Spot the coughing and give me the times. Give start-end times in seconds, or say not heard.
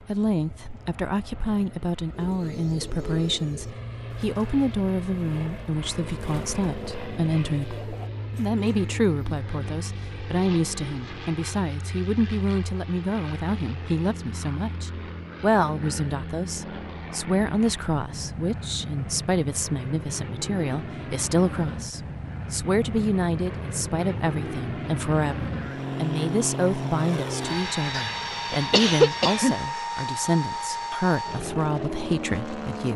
27.9-29.6.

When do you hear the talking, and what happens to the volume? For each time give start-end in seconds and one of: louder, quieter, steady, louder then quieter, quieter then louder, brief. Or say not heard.
0.1-32.9 steady.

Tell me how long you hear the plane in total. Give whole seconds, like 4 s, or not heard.
33 s.